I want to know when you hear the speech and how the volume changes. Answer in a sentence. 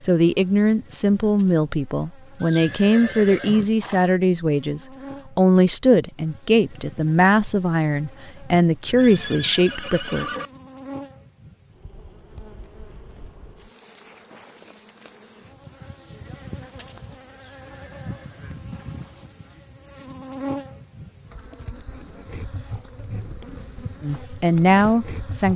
You can hear the speech from 0.0 to 10.2 s, at a steady volume; and briefly from 24.0 to 25.5 s.